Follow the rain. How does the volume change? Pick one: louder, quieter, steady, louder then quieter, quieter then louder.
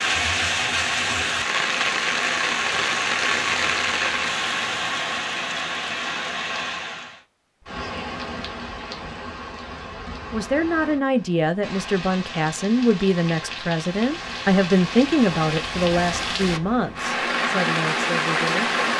quieter then louder.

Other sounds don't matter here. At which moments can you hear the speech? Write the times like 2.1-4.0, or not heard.
10.3-18.8.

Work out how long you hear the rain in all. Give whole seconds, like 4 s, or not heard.
19 s.